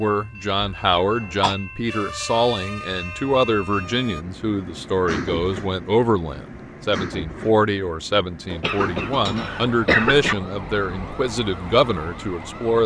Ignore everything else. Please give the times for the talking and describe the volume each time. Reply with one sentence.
You can hear the talking from 0.0 to 12.8 s, at a steady volume.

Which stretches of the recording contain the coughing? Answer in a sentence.
The coughing can be heard from 0.6 to 1.6 s and from 8.5 to 10.3 s.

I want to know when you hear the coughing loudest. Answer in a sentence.
The loudest moment of the coughing is at 10 seconds.